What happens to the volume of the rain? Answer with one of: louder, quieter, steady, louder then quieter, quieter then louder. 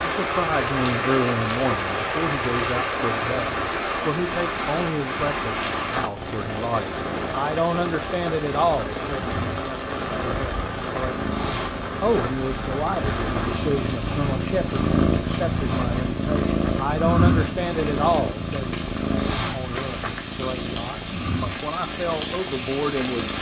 quieter then louder.